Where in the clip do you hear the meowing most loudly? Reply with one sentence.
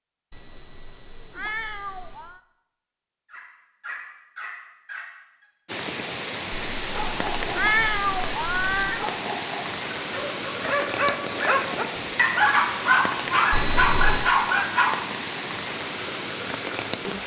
The volume of the meowing peaks at 8 seconds.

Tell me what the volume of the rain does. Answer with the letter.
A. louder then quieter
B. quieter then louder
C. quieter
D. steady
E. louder
D.